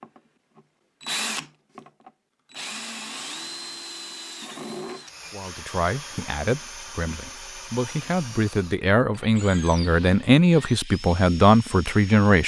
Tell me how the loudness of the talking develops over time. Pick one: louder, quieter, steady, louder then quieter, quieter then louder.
louder.